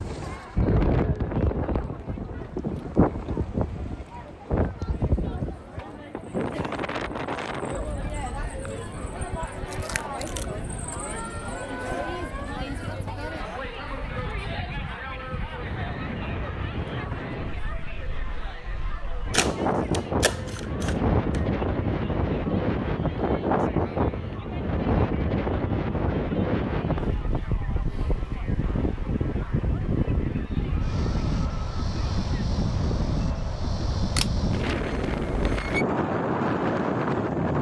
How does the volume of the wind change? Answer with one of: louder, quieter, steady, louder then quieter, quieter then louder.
quieter then louder.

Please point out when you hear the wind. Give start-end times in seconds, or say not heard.
0.0-37.5.